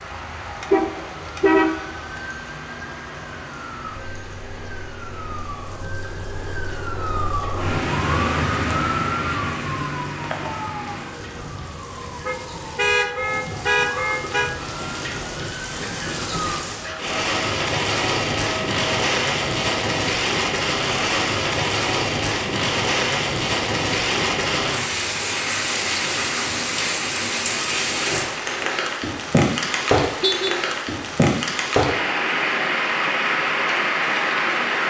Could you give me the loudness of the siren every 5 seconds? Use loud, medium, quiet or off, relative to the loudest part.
medium, loud, medium, medium, off, off, off.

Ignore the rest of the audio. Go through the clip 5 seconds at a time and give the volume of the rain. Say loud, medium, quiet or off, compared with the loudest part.
quiet, quiet, quiet, loud, loud, loud, loud.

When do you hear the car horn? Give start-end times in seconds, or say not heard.
0.6-2.2, 12.2-14.5, 30.2-30.6.